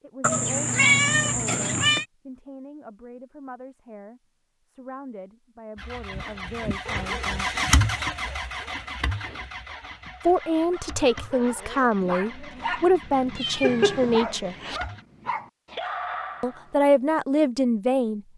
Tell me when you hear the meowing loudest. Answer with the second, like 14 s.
1 s.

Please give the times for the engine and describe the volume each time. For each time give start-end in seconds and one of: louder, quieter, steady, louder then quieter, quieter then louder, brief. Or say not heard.
5.8-15.1 quieter.